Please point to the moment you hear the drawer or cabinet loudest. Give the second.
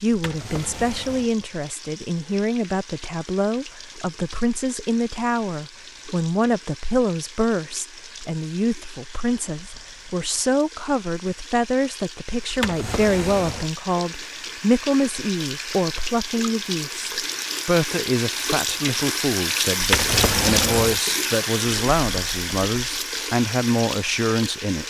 20 s.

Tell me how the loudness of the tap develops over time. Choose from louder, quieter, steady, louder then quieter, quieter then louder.
louder.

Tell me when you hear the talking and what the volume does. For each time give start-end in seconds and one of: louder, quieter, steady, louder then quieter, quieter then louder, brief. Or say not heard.
0.0-24.8 steady.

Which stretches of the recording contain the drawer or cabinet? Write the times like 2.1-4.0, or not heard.
0.1-1.3, 12.5-13.7, 19.8-21.0.